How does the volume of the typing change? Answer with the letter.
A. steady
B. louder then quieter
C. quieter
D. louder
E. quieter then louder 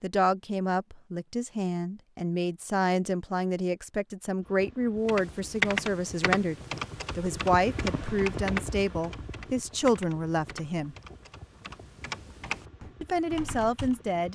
E.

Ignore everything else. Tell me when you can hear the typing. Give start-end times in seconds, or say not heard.
5.0-13.9.